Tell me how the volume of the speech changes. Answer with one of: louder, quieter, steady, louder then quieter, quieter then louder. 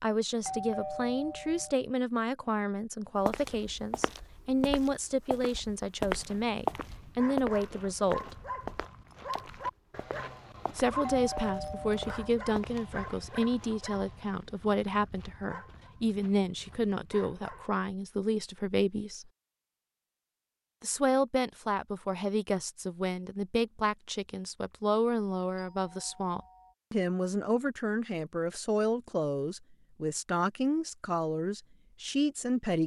steady.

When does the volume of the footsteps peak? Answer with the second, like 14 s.
7 s.